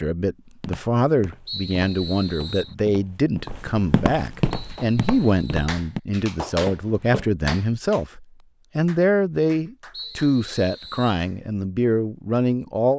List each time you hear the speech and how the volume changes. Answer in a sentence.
The speech can be heard from 0.0 to 12.9 s, at a steady volume.